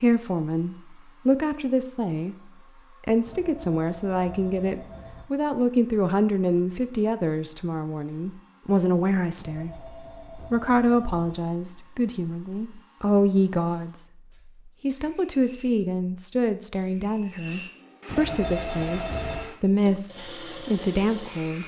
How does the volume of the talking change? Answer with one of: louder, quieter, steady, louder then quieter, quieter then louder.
steady.